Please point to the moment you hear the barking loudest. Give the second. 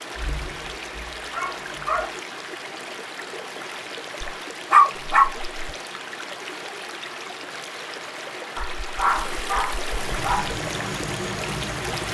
5 s.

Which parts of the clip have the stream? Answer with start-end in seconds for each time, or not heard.
0.0-12.0.